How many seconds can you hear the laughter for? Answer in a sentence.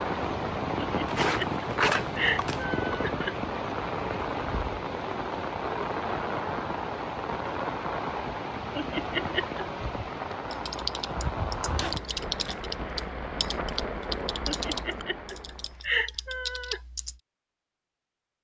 The laughter can be heard for 6 seconds in total.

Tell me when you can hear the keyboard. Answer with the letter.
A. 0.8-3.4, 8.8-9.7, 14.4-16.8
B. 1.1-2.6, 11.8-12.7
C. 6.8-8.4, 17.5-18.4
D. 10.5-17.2
D.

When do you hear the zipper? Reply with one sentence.
You can hear the zipper from 1.1 to 2.6 s and from 11.8 to 12.7 s.